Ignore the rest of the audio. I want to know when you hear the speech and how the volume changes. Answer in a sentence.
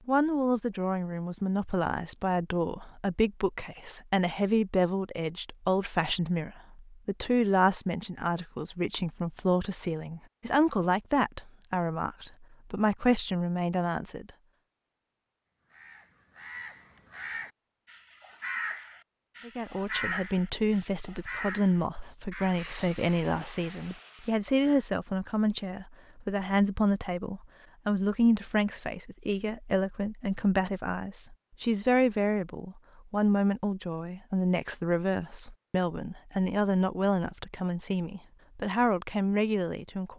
The speech can be heard from 0.1 to 14.3 s, at a steady volume; and from 19.4 to 40.1 s, at a steady volume.